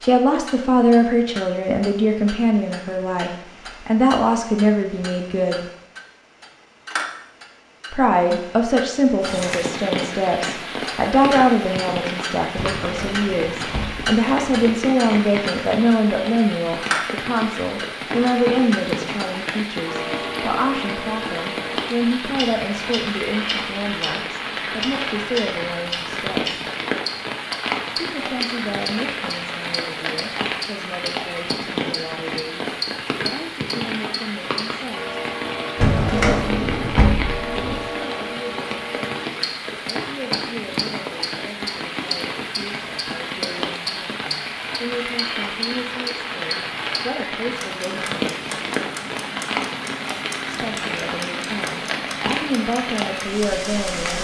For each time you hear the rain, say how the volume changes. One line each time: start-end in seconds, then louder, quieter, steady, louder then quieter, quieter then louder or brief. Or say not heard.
9.2-54.1 steady.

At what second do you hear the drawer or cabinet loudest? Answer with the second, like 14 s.
36 s.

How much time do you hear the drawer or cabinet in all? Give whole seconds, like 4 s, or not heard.
4 s.